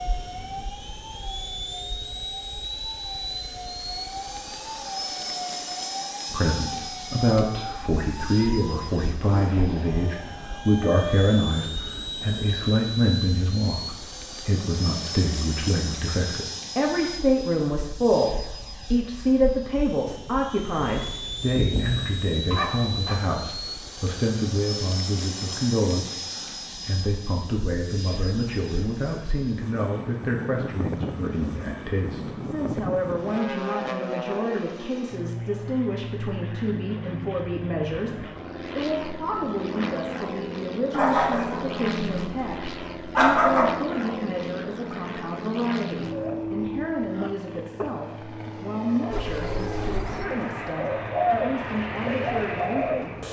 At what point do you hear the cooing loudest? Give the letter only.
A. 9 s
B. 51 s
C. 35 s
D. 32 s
B.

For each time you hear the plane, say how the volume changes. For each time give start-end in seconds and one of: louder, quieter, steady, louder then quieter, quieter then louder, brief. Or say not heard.
0.0-53.2 steady.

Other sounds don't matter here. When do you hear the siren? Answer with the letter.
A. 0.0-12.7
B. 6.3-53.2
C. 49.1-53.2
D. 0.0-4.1
A.